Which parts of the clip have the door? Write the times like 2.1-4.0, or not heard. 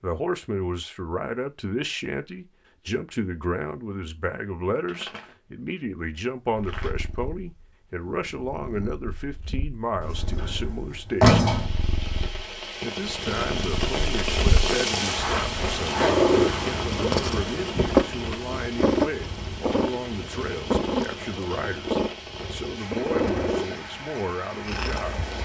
10.0-11.7.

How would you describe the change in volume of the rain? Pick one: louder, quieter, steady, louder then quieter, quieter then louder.
quieter.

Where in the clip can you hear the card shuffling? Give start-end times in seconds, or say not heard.
4.8-5.3, 6.5-7.0, 15.2-15.8.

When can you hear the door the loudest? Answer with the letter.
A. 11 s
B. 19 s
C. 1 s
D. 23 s
A.